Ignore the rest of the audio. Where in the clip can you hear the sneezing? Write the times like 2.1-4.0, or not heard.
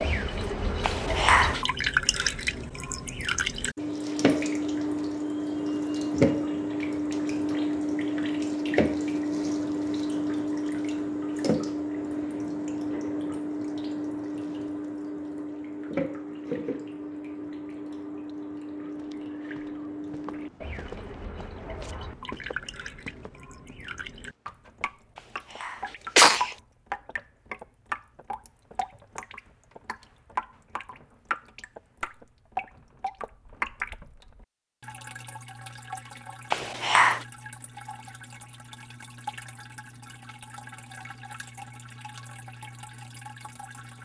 0.8-1.6, 25.6-26.6, 36.5-37.2.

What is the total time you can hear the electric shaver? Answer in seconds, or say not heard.
not heard.